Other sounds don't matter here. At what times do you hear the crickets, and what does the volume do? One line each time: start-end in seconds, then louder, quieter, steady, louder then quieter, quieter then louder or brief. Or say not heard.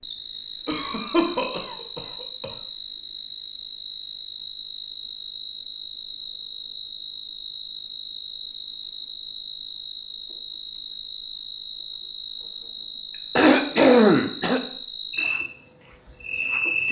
0.0-16.8 steady.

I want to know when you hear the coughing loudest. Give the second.
14 s.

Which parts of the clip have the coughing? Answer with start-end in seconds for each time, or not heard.
0.7-2.5, 13.3-14.6.